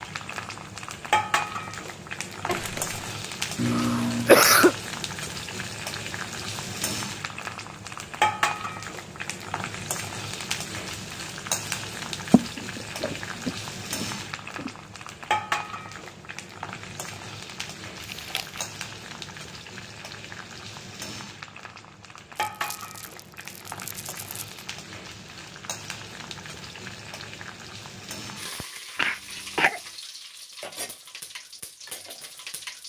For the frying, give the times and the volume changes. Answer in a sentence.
The frying can be heard from 0.0 to 32.8 s, getting quieter.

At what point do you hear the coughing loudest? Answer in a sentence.
The volume of the coughing peaks at 4 seconds.